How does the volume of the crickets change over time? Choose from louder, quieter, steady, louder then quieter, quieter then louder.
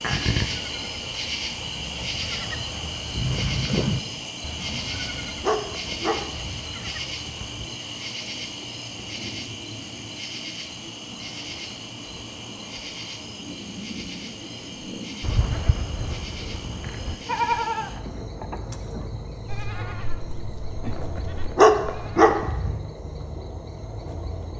quieter.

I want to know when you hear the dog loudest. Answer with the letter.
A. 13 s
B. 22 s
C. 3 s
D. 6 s
B.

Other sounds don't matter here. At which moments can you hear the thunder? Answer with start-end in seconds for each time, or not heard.
not heard.